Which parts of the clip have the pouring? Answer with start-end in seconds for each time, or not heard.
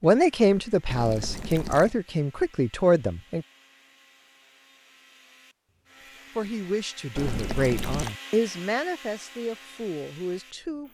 0.8-1.9, 7.2-8.2.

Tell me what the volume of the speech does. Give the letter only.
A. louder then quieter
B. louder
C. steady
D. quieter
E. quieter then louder
D.